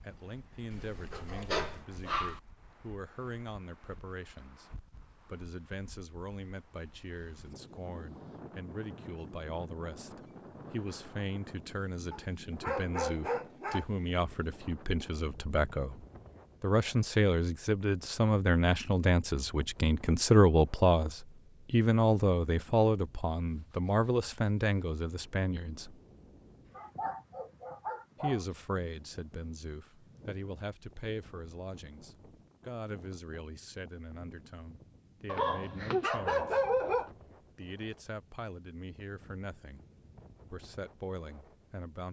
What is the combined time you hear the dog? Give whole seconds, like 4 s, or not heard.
7 s.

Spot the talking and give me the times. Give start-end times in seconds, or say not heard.
0.0-16.0, 16.6-25.9, 28.2-36.6, 37.5-39.8, 40.5-42.0.